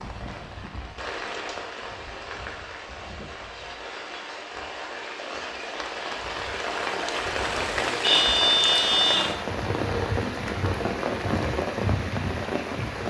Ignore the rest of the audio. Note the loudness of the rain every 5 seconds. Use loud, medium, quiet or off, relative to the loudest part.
medium, loud, loud.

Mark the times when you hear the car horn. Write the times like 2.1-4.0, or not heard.
8.0-9.3.